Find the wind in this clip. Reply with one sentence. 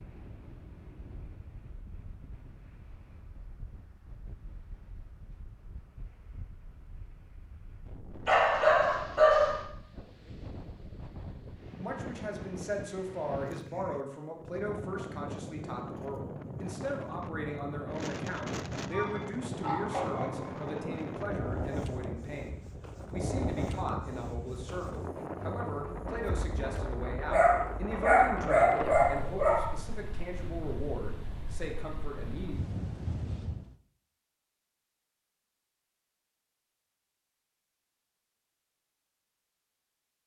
The wind can be heard from 0.0 to 33.8 s.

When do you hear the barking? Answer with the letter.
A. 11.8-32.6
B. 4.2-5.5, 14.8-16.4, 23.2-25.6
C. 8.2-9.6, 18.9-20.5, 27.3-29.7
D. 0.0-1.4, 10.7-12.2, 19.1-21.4
C.